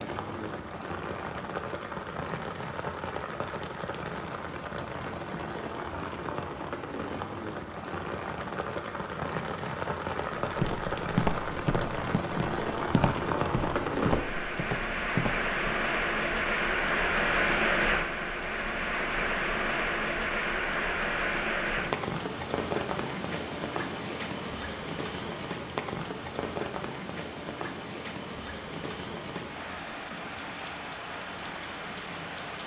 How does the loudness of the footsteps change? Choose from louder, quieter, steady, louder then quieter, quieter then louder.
quieter then louder.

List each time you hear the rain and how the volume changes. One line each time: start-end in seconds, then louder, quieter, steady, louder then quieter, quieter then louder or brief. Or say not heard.
0.0-32.6 louder then quieter.